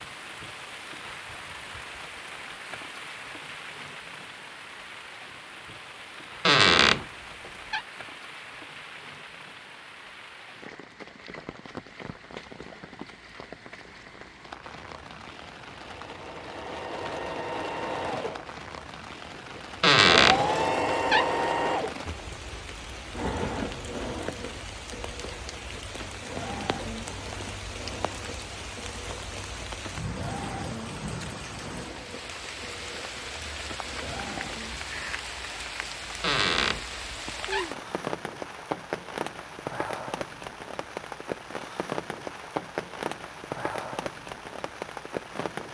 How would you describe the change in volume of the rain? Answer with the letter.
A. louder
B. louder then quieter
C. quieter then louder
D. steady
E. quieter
A.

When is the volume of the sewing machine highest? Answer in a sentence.
The volume of the sewing machine peaks at 21 seconds.